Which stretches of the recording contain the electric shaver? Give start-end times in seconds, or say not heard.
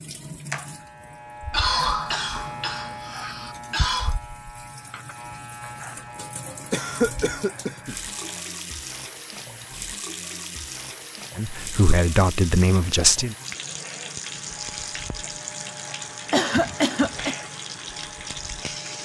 0.0-8.4, 14.2-19.0.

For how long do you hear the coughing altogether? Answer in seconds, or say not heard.
5 s.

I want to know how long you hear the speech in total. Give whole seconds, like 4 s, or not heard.
2 s.